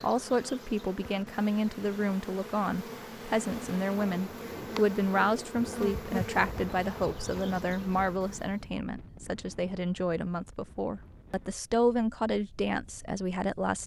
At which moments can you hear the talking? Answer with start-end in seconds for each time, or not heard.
0.0-13.8.